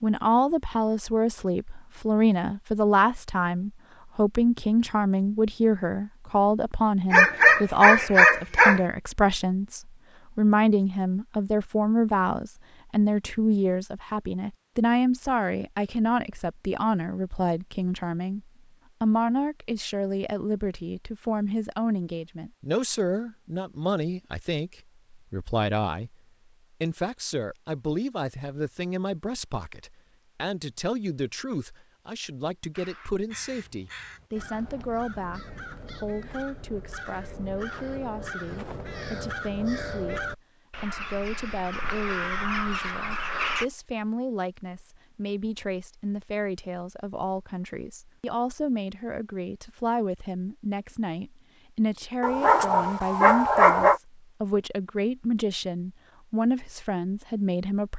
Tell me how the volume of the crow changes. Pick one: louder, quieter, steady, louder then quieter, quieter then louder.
louder.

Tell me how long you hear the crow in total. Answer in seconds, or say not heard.
11 s.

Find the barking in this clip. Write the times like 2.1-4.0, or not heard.
7.1-8.8, 52.2-54.0.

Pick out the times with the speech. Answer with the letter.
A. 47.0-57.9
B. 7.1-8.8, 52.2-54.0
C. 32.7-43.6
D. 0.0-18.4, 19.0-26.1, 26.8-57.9
D.